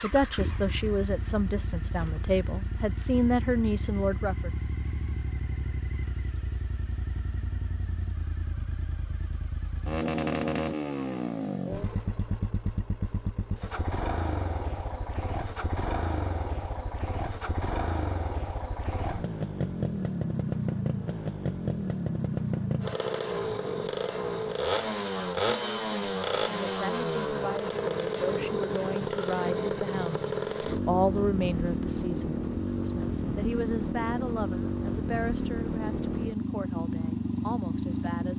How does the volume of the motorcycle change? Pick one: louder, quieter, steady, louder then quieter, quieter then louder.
louder.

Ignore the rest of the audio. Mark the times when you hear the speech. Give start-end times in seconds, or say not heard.
0.0-4.5, 25.4-38.3.